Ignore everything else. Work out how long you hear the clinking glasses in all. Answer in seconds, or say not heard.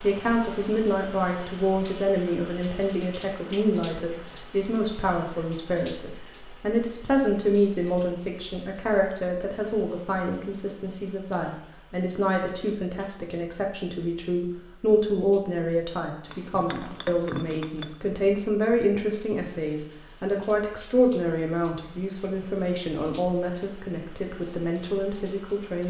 2 s.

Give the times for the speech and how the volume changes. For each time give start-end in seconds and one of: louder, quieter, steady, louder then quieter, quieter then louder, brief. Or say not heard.
0.0-25.8 steady.